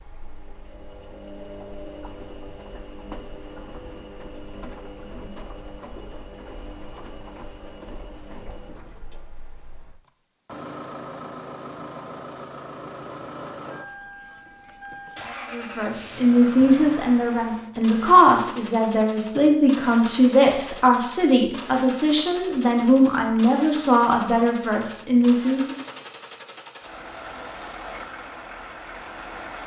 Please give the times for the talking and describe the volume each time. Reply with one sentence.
You can hear the talking from 15.5 to 25.8 s, at a steady volume.